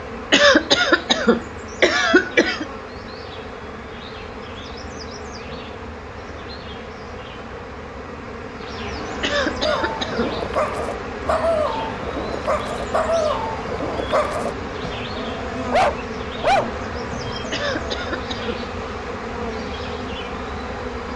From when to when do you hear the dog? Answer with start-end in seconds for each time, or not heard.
9.6-18.1.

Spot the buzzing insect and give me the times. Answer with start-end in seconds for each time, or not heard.
0.0-21.1.